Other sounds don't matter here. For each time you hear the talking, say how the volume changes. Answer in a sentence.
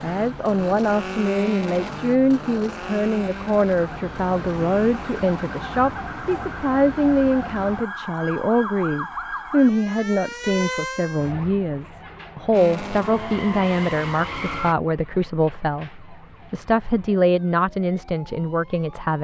The talking can be heard from 0.0 to 19.1 s, at a steady volume.